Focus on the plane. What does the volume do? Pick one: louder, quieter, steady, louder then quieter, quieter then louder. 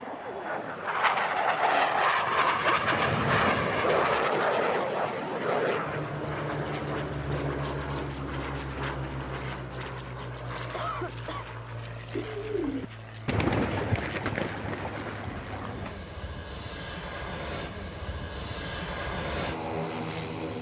quieter then louder.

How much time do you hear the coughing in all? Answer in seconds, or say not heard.
2 s.